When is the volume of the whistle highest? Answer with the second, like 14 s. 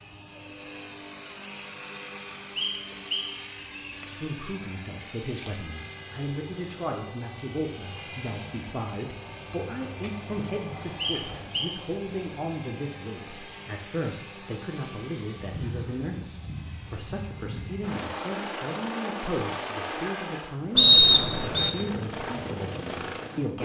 21 s.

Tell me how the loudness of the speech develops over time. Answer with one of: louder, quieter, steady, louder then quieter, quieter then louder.
steady.